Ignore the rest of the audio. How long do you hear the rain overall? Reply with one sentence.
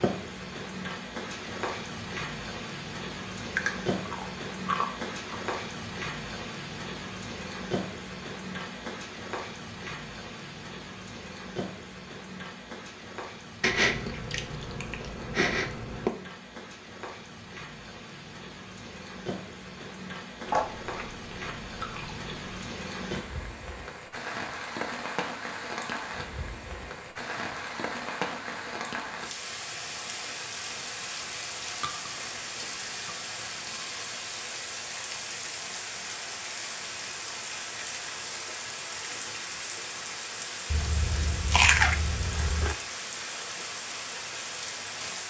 You can hear the rain for 45 seconds altogether.